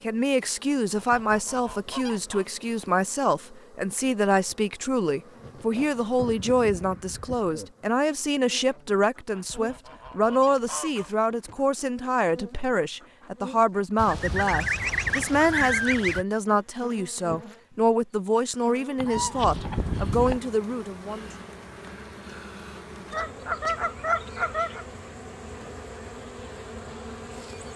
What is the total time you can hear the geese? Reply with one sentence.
The geese can be heard for 11 seconds in total.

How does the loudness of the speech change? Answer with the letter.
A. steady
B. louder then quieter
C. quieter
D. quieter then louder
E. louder
A.